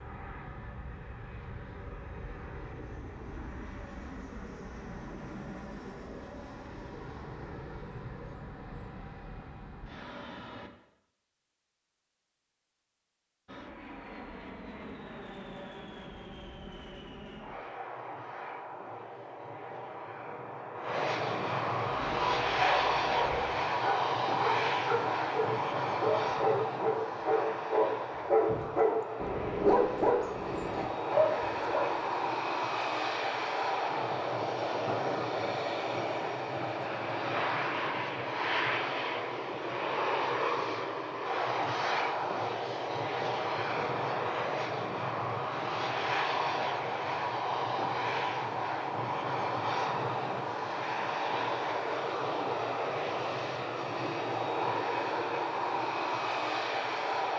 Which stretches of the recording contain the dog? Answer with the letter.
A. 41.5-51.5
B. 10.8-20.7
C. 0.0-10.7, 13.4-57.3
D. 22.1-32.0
D.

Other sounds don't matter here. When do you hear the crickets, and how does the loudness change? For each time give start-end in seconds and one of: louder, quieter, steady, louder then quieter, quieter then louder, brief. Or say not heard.
not heard.